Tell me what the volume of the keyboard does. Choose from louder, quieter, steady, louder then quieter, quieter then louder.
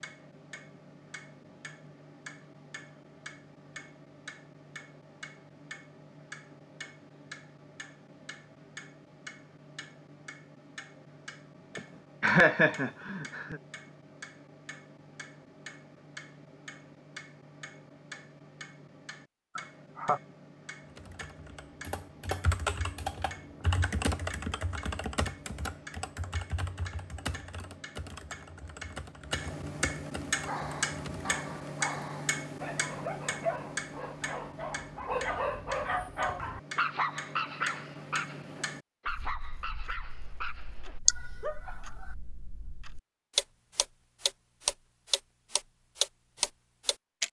quieter.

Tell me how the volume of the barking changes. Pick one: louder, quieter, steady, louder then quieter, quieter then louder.
louder then quieter.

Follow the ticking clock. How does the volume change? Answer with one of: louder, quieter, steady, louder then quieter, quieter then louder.
louder.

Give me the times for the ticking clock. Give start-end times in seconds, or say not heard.
0.0-47.2.